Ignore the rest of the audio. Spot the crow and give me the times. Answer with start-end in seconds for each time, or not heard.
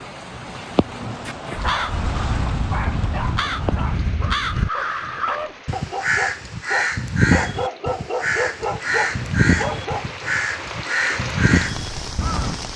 1.6-12.6.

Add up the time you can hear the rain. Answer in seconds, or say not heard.
13 s.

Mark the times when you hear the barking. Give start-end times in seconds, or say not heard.
0.7-10.3.